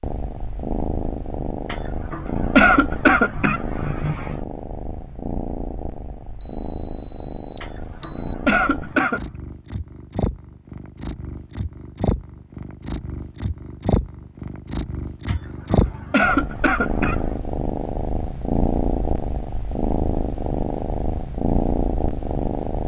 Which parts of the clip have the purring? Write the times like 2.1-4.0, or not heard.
0.0-22.8.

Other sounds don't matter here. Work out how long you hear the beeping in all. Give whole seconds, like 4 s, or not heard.
2 s.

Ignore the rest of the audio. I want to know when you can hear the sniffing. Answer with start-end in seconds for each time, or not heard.
1.7-4.4, 7.6-9.2, 15.2-17.3.